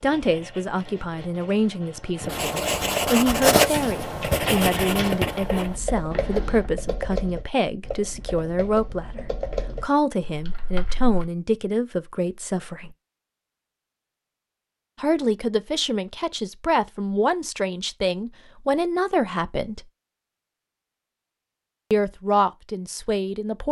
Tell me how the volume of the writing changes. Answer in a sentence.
The volume of the writing goes up, then down.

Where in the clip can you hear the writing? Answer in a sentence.
The writing can be heard from 0.0 to 6.7 s.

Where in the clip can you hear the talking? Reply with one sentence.
You can hear the talking from 0.0 to 12.9 s, from 14.9 to 19.9 s and from 21.9 to 23.6 s.